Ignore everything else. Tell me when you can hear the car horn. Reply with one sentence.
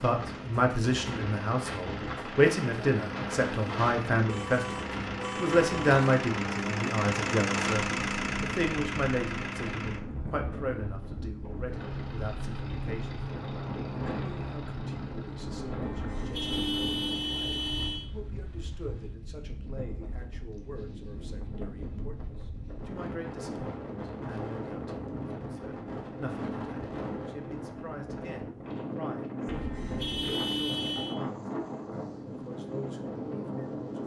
The car horn can be heard from 4.2 to 6.2 s, from 15.8 to 18.1 s and from 29.4 to 31.1 s.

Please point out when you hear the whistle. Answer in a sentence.
You can't hear the whistle here.